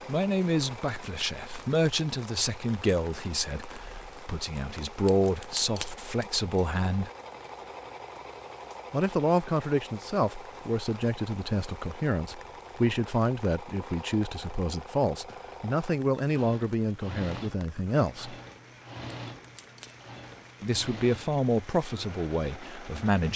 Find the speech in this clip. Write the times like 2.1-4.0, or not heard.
0.1-7.1, 8.9-18.4, 20.6-23.3.